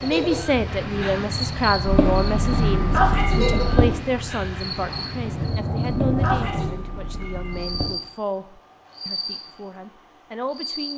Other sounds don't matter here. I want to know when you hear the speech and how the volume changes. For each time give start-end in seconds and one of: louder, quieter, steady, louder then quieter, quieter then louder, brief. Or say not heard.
0.0-10.9 quieter.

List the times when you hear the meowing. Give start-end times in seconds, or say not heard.
1.9-3.9, 5.8-7.9.